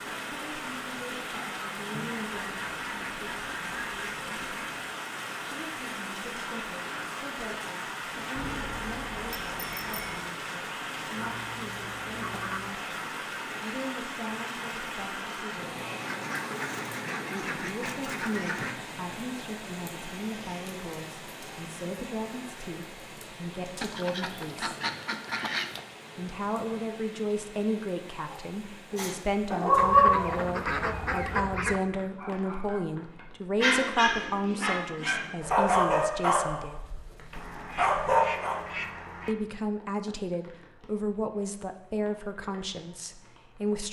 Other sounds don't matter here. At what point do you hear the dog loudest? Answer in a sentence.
The volume of the dog peaks at 30 seconds.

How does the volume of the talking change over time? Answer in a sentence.
The loudness of the talking goes up.